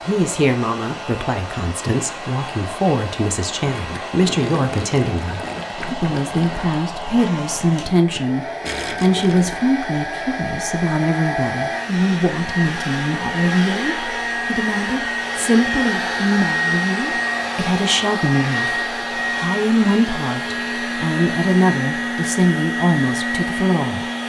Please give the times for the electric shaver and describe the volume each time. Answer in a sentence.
The electric shaver can't be heard in this clip.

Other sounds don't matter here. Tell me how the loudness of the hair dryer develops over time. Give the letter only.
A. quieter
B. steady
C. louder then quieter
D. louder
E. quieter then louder
D.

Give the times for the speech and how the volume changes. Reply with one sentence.
The speech can be heard from 0.1 to 24.1 s, at a steady volume.